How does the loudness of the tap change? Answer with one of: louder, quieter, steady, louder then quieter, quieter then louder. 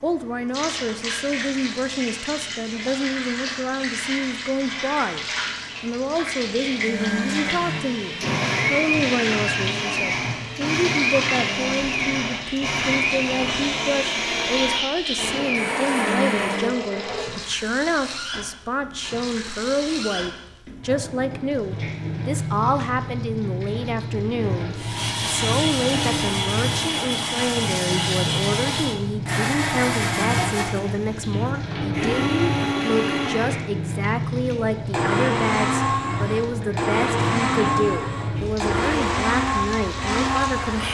steady.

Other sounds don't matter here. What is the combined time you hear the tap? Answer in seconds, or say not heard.
41 s.